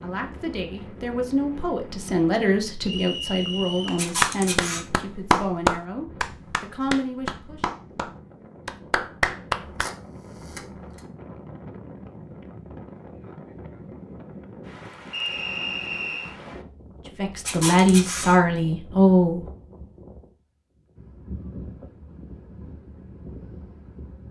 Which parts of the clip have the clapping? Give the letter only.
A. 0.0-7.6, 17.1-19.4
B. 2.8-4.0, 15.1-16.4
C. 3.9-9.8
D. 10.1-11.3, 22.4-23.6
C.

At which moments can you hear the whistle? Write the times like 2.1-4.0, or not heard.
2.8-4.0, 15.1-16.4.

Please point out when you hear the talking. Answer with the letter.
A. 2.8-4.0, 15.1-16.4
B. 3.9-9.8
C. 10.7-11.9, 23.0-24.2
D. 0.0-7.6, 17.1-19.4
D.